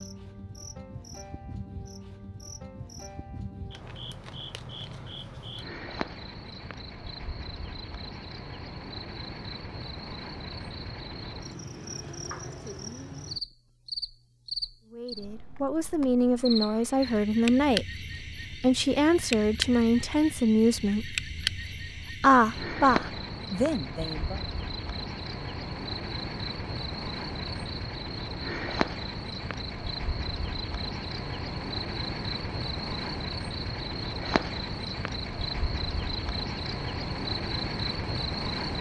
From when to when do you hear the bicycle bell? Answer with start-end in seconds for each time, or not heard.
not heard.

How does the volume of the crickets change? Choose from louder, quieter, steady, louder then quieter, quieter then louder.
louder.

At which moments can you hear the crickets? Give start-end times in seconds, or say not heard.
0.0-38.7.